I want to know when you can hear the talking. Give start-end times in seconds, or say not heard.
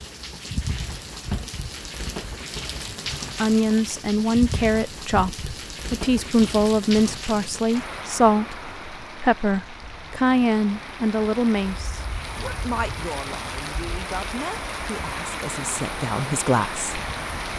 3.4-17.0.